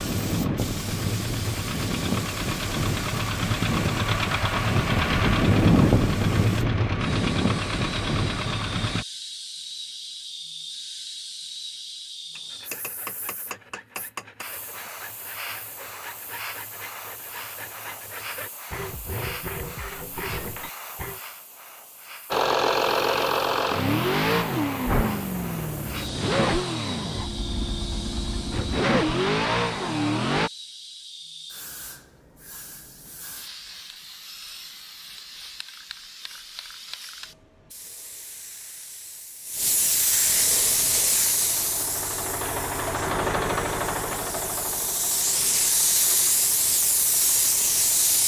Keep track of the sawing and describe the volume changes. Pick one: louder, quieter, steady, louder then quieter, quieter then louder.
louder.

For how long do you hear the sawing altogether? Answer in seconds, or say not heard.
9 s.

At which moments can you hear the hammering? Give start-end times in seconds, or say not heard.
12.3-14.4.